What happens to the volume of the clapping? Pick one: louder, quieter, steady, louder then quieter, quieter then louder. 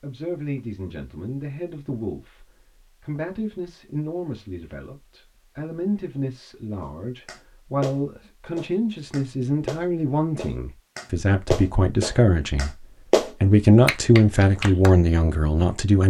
louder.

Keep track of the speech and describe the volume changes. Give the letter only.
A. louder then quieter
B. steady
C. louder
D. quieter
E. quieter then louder
C.